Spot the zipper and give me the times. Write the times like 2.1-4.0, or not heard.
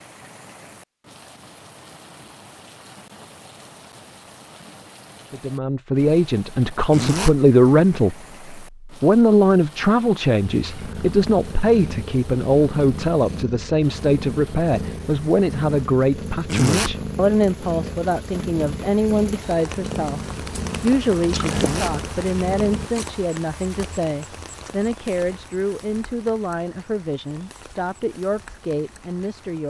6.9-7.3, 16.4-16.9, 21.5-21.9.